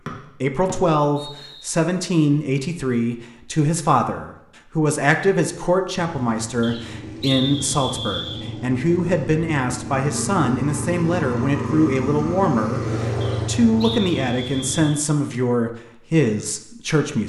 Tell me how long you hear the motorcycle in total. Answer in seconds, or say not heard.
9 s.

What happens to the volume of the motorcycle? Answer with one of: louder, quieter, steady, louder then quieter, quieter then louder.
louder.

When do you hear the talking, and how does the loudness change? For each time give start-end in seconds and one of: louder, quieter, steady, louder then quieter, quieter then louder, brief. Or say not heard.
0.4-17.2 steady.